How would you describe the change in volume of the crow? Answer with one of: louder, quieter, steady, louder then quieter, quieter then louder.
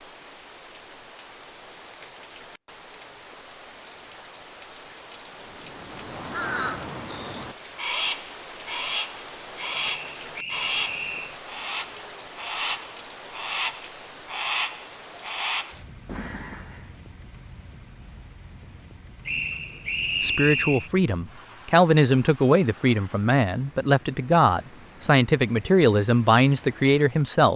steady.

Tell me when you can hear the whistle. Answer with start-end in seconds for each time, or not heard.
9.7-11.4, 19.2-20.9.